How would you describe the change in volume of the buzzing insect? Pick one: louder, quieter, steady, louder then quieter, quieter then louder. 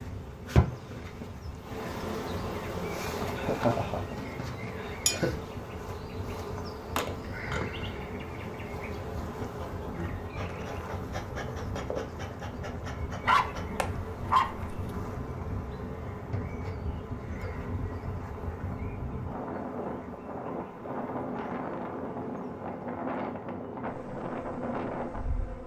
quieter.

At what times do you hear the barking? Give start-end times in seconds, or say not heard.
13.2-14.8.